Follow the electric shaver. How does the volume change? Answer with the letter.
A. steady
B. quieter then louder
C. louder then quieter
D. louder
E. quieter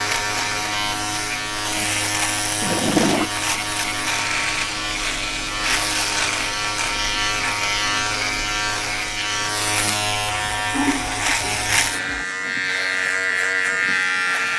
A.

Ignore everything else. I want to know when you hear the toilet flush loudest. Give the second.
3 s.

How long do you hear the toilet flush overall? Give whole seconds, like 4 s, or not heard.
3 s.